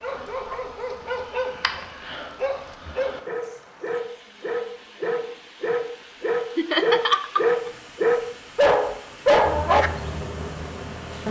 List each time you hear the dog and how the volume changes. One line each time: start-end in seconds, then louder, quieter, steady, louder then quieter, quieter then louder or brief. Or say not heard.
0.0-9.9 louder.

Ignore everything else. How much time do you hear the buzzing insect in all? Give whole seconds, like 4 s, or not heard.
2 s.